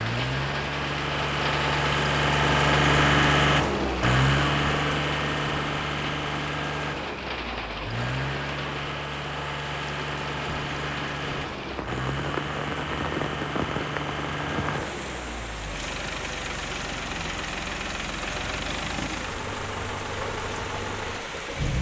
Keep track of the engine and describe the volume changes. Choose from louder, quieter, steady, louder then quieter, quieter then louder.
quieter.